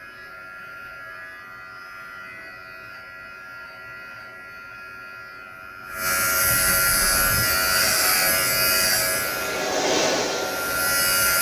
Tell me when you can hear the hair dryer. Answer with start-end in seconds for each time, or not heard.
6.9-11.3.